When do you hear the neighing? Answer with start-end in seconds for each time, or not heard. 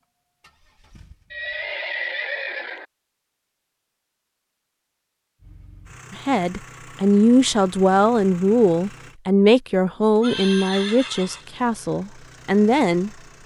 1.3-2.9, 10.2-11.4.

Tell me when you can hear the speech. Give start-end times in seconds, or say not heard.
6.1-13.1.